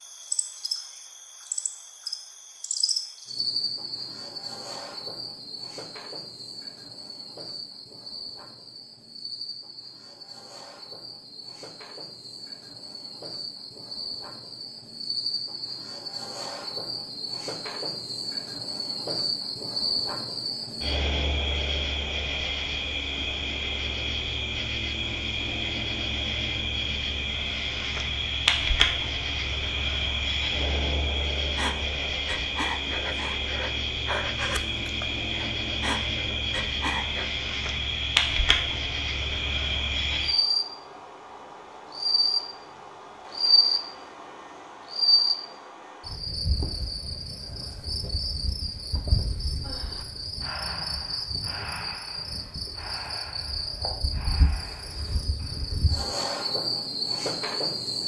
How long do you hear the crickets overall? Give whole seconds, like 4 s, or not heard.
58 s.